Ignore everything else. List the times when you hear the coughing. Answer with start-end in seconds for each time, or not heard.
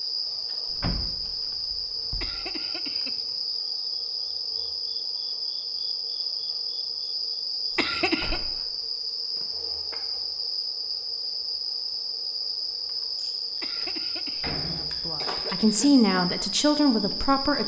2.2-3.4, 7.8-8.4, 13.6-16.1.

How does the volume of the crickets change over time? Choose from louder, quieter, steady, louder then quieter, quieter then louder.
steady.